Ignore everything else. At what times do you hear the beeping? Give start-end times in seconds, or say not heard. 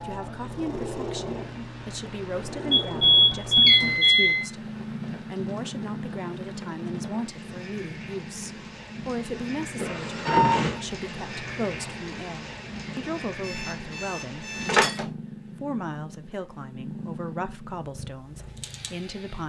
2.7-4.5, 9.8-10.8, 13.4-15.1.